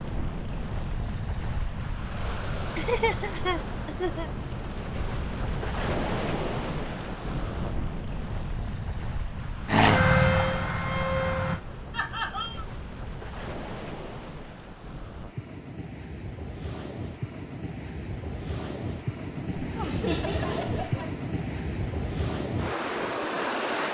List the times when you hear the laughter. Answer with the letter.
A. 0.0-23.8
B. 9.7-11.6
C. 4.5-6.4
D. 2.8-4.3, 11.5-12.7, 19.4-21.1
D.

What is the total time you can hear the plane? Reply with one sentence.
You can hear the plane for 2 seconds altogether.